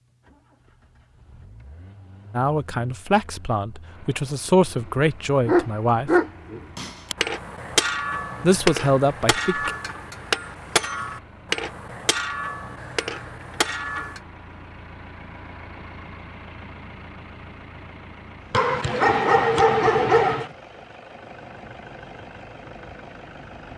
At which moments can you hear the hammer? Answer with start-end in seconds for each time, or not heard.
6.8-14.2.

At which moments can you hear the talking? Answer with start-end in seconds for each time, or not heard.
2.4-6.1, 8.4-9.7.